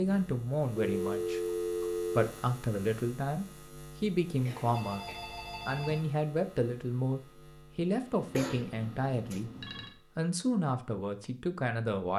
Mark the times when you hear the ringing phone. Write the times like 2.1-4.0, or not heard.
0.8-2.3, 4.7-6.0, 8.2-9.9.